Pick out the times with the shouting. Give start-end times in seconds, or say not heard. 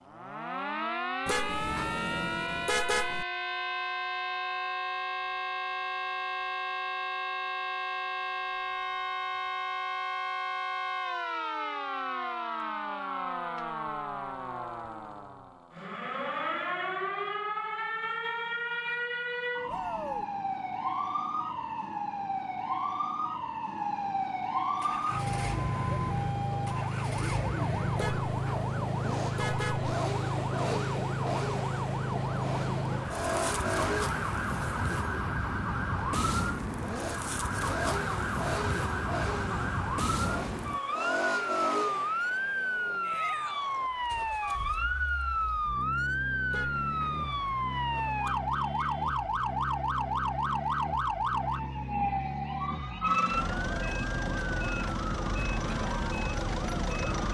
19.6-20.2, 43.0-43.9.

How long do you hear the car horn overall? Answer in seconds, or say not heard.
5 s.